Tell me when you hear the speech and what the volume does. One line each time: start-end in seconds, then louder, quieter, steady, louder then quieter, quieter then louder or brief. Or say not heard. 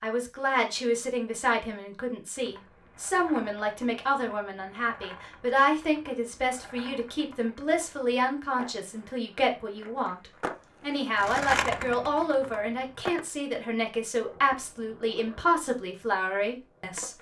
0.0-17.1 steady.